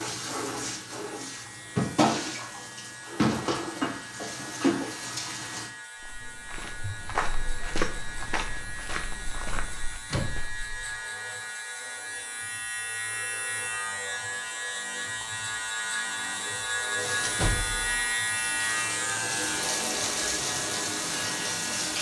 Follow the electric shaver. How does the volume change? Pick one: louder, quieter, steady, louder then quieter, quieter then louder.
louder.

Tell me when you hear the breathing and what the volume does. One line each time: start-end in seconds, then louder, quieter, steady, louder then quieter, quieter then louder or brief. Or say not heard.
not heard.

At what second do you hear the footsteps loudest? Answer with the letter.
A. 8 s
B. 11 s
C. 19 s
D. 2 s
A.